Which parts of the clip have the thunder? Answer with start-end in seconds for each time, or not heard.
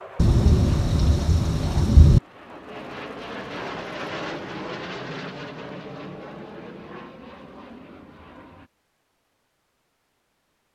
0.1-2.2.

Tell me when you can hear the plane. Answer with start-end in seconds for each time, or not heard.
0.0-8.7.